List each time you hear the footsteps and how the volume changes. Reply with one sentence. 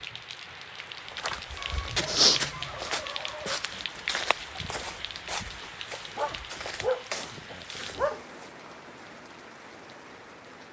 You can hear the footsteps from 1.1 to 8.1 s, getting quieter.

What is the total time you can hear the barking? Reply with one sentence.
You can hear the barking for 4 seconds altogether.